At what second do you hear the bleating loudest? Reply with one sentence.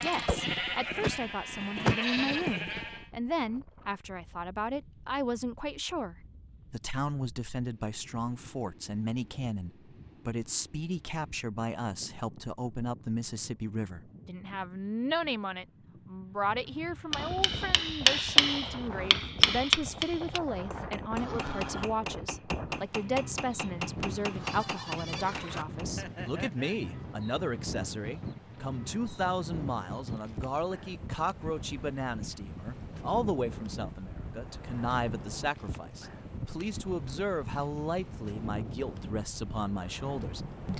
The loudest moment of the bleating is at 2 seconds.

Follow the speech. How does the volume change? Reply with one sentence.
The loudness of the speech stays about the same.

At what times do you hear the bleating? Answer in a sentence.
You can hear the bleating from 0.0 to 3.0 s and from 24.1 to 26.9 s.